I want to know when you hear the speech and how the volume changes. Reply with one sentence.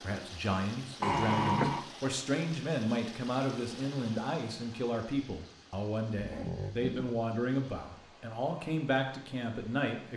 You can hear the speech from 0.0 to 10.1 s, at a steady volume.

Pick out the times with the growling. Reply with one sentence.
You can hear the growling from 1.0 to 1.9 s and from 6.2 to 7.1 s.